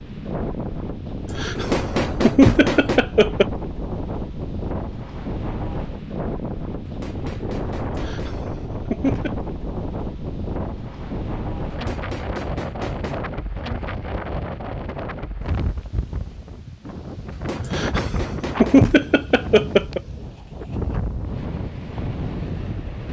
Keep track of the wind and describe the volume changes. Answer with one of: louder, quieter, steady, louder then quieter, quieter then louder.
steady.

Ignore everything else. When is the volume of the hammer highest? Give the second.
2 s.